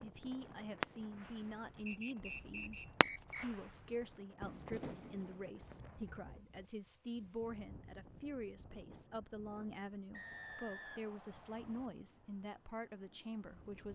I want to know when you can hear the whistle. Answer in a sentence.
The whistle can be heard from 1.9 to 3.5 s and from 10.1 to 11.9 s.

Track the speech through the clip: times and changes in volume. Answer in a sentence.
You can hear the speech briefly from 0.0 to 2.8 s; and from 3.4 to 13.8 s, at a steady volume.